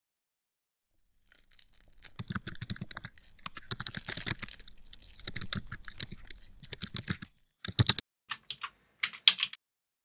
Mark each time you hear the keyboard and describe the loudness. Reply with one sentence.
The keyboard can be heard from 2.1 to 9.6 s, at a steady volume.